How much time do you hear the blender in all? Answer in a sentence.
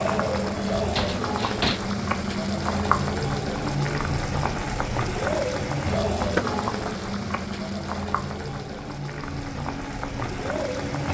You can hear the blender for 2 seconds altogether.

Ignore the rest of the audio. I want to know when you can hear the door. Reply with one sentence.
You can hear the door from 0.9 to 1.8 s and from 6.2 to 6.6 s.